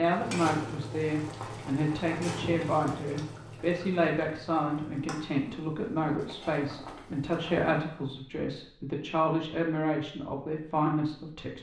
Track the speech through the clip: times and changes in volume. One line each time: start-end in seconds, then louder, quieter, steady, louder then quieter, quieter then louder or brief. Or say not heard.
0.0-11.5 steady.